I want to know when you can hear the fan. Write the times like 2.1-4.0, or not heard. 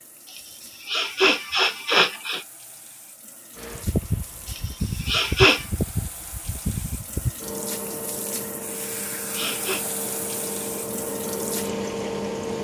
3.5-12.5.